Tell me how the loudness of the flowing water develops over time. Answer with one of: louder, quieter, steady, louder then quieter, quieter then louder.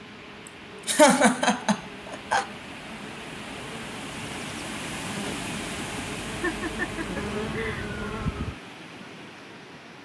louder then quieter.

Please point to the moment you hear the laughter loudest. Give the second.
1 s.